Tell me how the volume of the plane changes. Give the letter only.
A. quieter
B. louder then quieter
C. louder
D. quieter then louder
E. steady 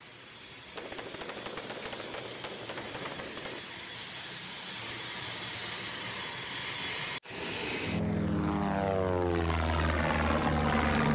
C.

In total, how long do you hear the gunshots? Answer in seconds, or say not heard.
3 s.